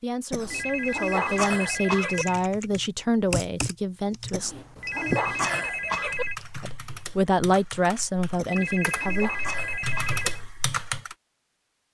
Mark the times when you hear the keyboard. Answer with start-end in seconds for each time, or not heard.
2.1-11.2.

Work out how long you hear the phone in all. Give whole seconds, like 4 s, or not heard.
6 s.